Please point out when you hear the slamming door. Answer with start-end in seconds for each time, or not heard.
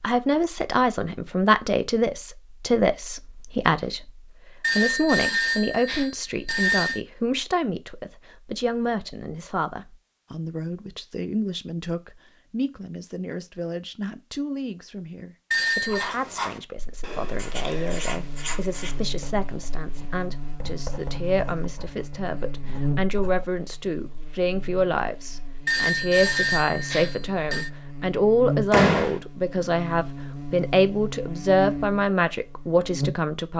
28.7-29.1.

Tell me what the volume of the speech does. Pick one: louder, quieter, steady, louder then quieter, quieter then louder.
quieter then louder.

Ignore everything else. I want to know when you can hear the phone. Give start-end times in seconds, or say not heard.
4.6-7.0, 15.5-16.1, 25.6-27.7.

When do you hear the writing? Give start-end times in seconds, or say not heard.
15.8-23.4.